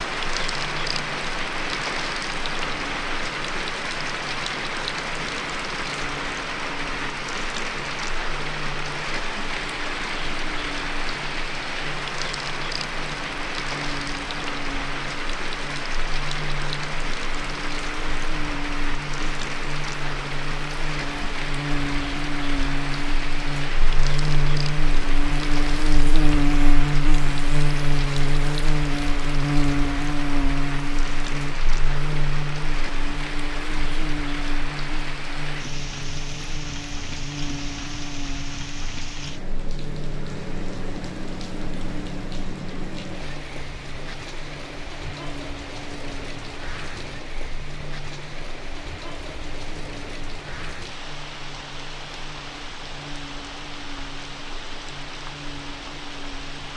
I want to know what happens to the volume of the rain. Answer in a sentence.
The volume of the rain goes down.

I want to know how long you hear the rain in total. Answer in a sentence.
You can hear the rain for 57 seconds altogether.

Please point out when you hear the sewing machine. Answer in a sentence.
The sewing machine can't be heard in this clip.